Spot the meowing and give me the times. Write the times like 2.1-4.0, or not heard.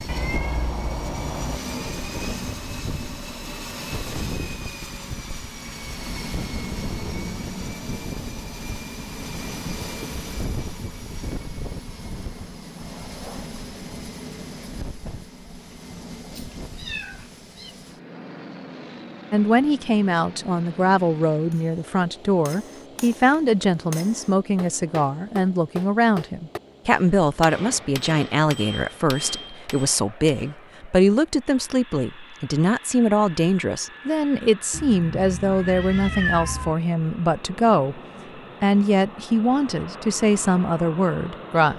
0.1-1.6, 16.3-17.8, 34.7-36.8.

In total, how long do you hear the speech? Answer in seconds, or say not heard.
22 s.